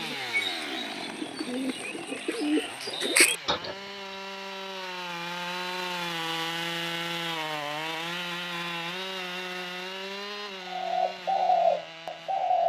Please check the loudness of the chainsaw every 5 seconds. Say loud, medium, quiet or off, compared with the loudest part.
medium, loud, medium.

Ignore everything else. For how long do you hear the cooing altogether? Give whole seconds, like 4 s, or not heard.
6 s.